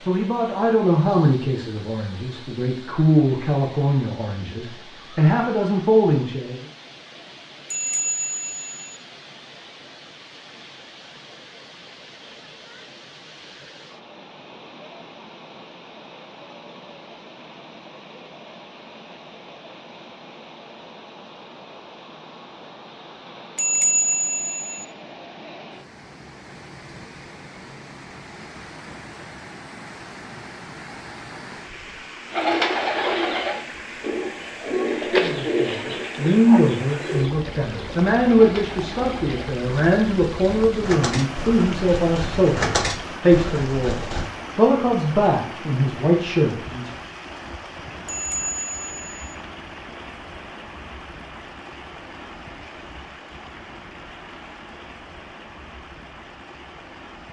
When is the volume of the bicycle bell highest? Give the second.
24 s.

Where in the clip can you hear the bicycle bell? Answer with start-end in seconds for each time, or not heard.
7.7-9.0, 23.6-24.9, 48.0-49.1.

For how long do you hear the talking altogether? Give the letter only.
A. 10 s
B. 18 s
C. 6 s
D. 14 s
B.